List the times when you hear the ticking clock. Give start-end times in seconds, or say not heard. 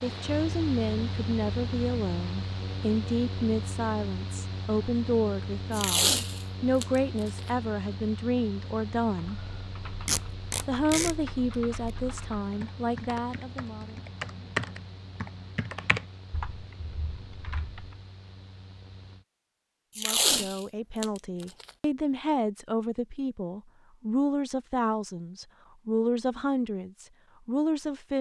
not heard.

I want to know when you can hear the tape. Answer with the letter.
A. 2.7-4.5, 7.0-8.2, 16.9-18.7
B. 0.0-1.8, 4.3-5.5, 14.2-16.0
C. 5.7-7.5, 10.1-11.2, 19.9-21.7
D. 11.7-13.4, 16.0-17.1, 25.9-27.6
C.